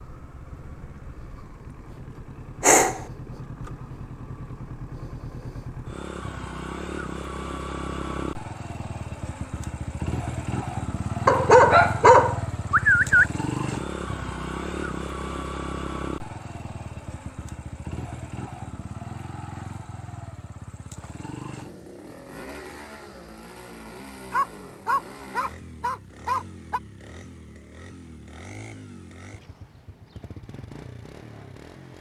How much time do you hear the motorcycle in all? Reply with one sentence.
The motorcycle can be heard for 32 seconds in total.